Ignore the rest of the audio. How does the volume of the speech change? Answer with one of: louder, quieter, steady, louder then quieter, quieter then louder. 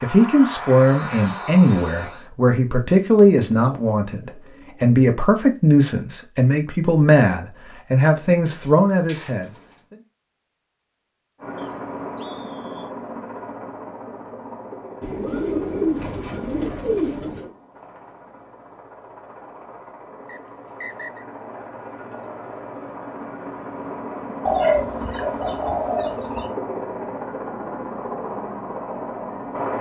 steady.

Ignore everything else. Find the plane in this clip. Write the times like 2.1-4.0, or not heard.
0.0-2.1, 11.4-29.7.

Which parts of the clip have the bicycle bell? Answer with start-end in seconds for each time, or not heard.
not heard.